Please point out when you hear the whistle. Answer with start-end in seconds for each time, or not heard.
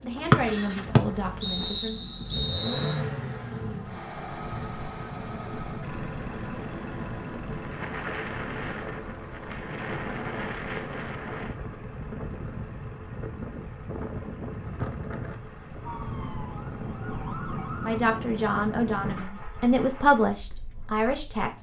0.3-3.0.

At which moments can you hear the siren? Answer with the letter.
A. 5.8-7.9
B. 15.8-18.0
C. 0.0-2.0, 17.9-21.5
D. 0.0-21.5
B.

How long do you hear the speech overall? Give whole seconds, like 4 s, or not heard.
6 s.